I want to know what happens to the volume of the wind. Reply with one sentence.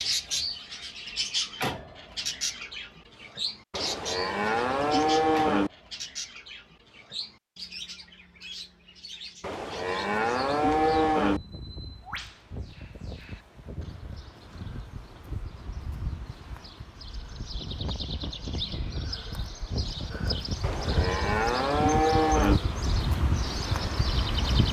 The volume of the wind goes up.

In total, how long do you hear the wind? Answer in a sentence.
The wind can be heard for 14 seconds in total.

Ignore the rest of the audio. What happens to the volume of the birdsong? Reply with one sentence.
The volume of the birdsong goes down, then up.